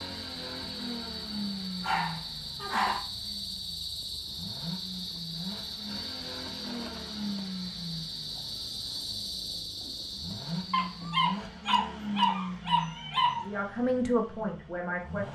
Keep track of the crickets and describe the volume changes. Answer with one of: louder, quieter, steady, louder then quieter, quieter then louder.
steady.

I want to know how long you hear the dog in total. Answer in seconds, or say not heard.
4 s.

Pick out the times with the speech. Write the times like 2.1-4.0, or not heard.
13.4-15.2.